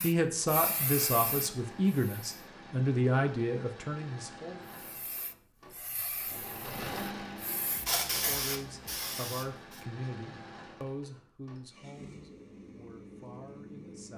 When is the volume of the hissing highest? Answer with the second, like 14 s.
8 s.